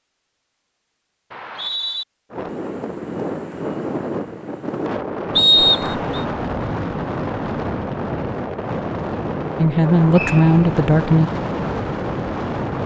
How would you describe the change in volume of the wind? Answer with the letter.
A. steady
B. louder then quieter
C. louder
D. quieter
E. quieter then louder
A.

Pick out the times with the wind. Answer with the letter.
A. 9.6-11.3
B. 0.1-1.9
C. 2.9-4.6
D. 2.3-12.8
D.